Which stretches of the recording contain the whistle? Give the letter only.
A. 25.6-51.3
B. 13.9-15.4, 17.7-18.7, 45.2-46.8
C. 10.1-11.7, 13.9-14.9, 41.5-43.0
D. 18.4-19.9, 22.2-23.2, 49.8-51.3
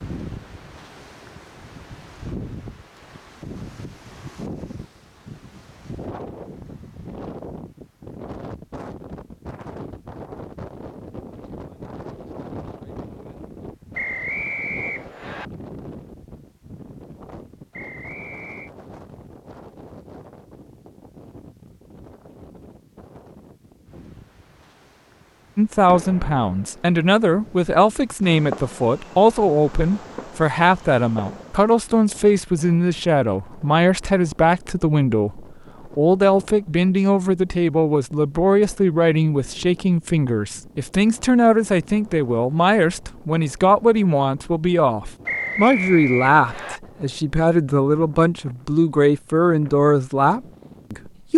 B.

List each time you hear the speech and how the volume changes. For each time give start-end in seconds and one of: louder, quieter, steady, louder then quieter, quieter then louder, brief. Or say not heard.
25.6-51.3 steady.